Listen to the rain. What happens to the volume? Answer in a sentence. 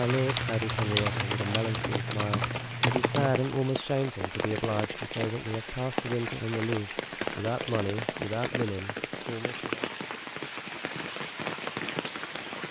The loudness of the rain stays about the same.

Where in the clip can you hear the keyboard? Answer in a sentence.
The keyboard can be heard from 0.0 to 3.4 s.